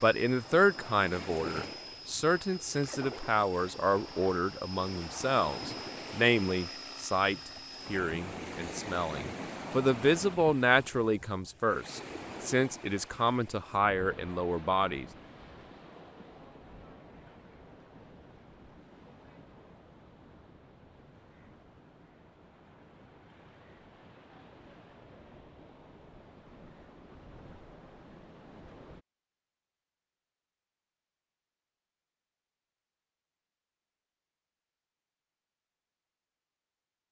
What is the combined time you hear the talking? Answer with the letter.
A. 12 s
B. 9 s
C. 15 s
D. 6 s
C.